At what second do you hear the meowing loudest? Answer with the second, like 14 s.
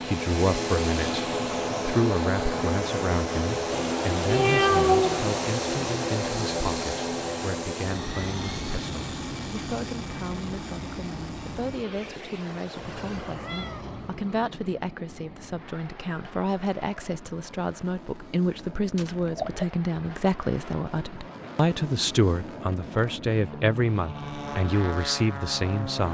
5 s.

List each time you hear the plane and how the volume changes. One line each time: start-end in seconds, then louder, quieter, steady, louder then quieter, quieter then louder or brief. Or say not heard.
0.0-26.0 quieter then louder.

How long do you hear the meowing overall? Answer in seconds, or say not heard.
3 s.